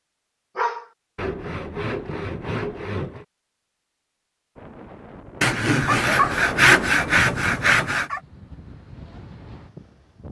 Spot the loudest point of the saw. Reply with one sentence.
The loudest moment of the saw is at 7 seconds.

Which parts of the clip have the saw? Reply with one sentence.
You can hear the saw from 1.1 to 3.2 s and from 5.4 to 8.1 s.